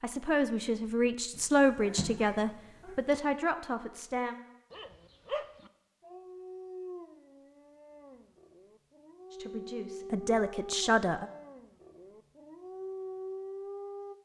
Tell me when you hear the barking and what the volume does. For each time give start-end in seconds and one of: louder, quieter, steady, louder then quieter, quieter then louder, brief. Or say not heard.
4.7-14.1 quieter then louder.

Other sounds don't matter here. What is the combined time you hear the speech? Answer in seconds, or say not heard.
6 s.